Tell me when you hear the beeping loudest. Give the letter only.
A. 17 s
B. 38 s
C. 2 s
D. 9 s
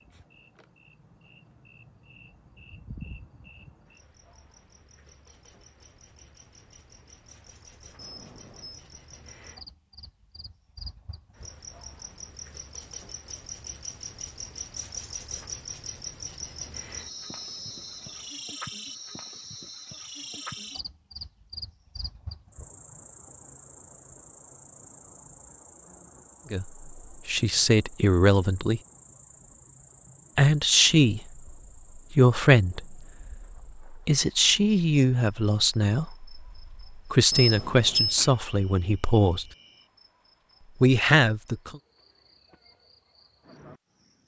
B.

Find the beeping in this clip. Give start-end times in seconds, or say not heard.
8.0-8.8, 16.4-18.4, 37.3-38.2.